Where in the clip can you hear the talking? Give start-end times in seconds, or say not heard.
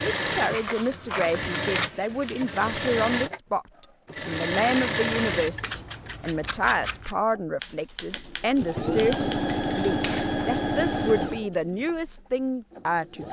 0.0-3.6, 4.2-13.2.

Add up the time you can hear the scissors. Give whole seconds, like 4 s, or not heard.
5 s.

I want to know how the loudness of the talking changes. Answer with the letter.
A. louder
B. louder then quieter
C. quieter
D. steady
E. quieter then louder
D.